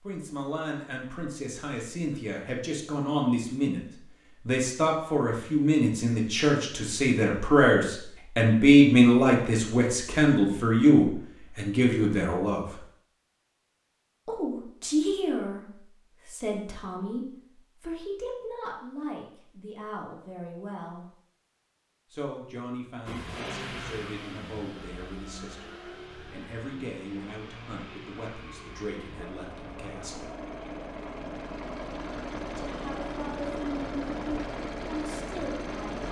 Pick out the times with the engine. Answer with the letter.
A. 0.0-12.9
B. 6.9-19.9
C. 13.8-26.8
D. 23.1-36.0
D.